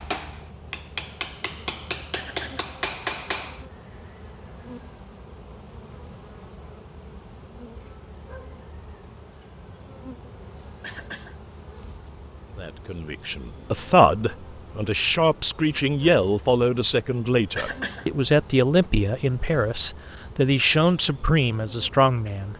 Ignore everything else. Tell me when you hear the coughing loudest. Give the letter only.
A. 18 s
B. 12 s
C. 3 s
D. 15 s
A.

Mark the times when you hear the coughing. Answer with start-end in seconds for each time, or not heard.
2.1-2.7, 10.8-11.3, 17.6-18.1.